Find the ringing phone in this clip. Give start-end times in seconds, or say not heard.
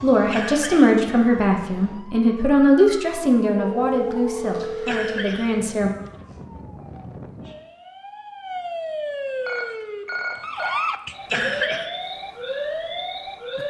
3.5-5.3, 9.4-10.8.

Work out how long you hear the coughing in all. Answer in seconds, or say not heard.
3 s.